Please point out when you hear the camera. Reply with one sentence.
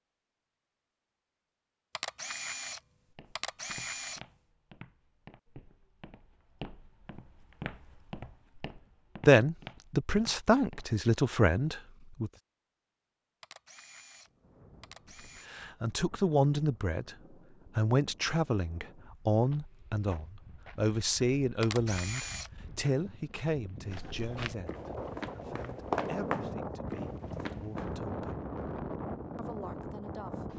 You can hear the camera from 1.9 to 4.3 s, from 13.4 to 15.5 s and from 21.6 to 22.5 s.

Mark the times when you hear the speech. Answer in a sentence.
The speech can be heard from 9.2 to 12.3 s, from 15.4 to 17.1 s, from 17.8 to 28.4 s and from 29.4 to 30.5 s.